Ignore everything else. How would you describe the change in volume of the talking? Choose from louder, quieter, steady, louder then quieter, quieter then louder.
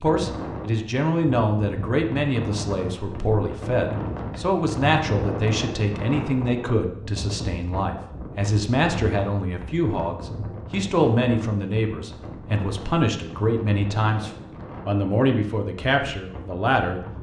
steady.